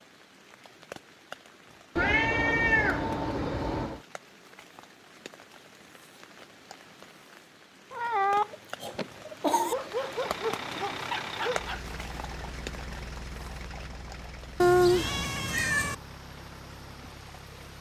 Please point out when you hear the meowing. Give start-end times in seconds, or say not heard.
1.9-4.0, 7.9-9.8, 14.6-15.9.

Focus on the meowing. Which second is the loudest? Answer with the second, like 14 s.
15 s.